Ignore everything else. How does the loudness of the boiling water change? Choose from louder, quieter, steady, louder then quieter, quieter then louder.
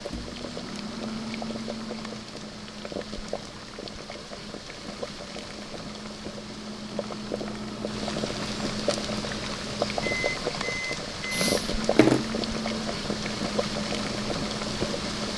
louder.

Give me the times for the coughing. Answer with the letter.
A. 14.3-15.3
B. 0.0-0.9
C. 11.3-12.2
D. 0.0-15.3
C.